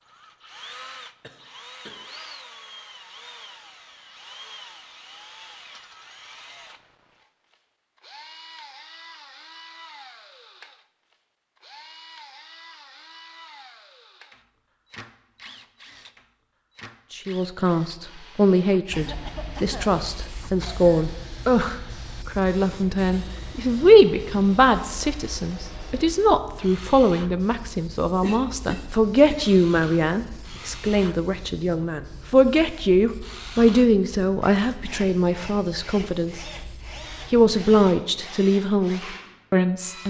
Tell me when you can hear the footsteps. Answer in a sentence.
You can't hear the footsteps here.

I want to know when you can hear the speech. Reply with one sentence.
You can hear the speech from 17.1 to 36.5 s and from 37.3 to 40.0 s.